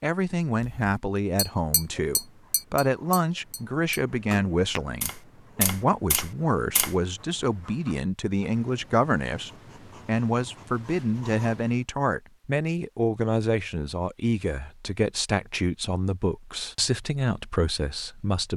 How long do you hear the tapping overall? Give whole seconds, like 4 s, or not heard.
6 s.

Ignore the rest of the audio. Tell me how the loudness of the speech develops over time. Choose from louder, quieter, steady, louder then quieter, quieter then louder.
steady.